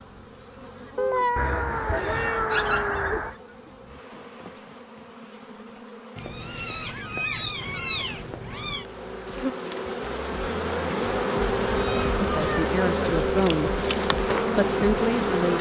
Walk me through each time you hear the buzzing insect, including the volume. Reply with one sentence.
You can hear the buzzing insect from 0.0 to 15.5 s, getting louder.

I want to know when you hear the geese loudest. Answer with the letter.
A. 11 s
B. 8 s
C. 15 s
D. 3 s
D.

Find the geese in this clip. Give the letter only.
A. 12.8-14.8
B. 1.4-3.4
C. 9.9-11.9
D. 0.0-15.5
B.